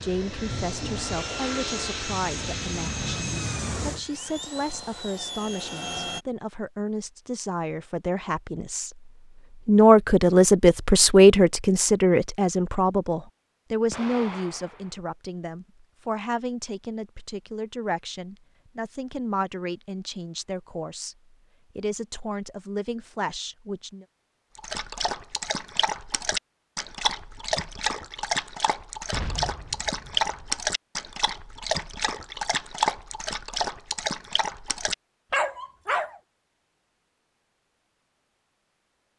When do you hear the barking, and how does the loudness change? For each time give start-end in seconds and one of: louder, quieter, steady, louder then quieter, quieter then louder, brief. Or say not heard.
24.6-36.2 steady.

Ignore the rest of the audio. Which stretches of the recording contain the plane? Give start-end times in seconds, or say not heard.
0.0-6.2.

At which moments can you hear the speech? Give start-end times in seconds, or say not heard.
0.0-21.1, 21.8-24.1.